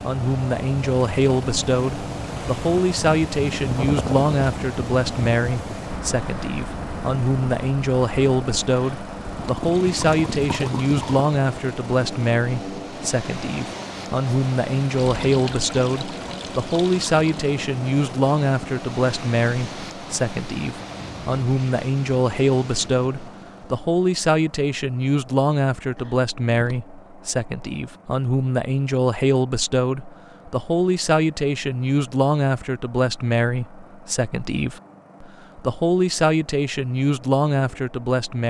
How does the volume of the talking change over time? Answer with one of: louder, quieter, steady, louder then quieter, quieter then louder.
steady.